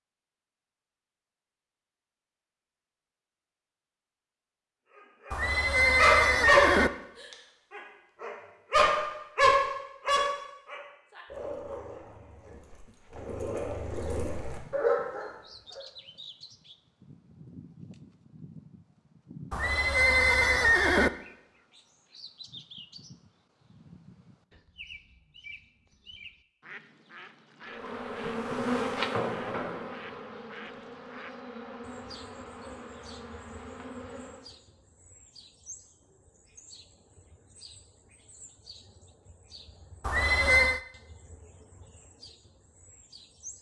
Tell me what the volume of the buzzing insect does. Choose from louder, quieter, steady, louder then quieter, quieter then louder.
quieter.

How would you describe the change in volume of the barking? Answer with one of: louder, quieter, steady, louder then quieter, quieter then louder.
quieter then louder.